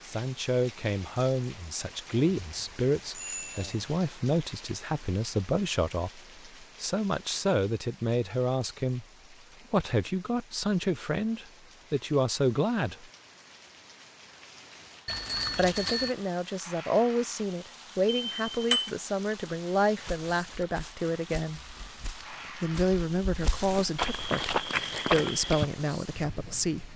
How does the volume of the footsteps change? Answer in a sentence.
The volume of the footsteps goes up.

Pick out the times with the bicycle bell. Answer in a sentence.
You can hear the bicycle bell from 2.1 to 3.9 s, from 15.1 to 16.1 s and from 18.1 to 18.9 s.